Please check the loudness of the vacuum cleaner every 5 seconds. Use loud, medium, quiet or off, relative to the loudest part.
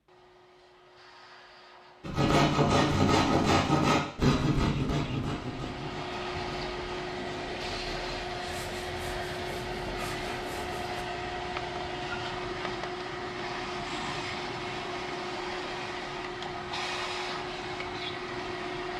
quiet, loud, loud, loud.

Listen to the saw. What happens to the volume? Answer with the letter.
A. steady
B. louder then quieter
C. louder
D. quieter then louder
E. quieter
E.